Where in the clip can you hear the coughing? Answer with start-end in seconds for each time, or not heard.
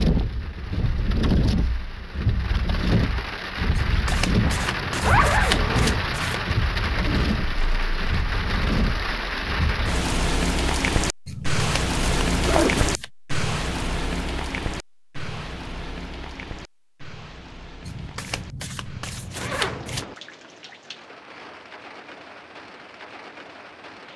not heard.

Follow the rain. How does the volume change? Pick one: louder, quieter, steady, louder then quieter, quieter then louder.
quieter.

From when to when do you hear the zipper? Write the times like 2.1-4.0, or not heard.
4.5-6.0, 12.3-12.9, 19.4-20.1.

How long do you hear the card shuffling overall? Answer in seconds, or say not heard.
7 s.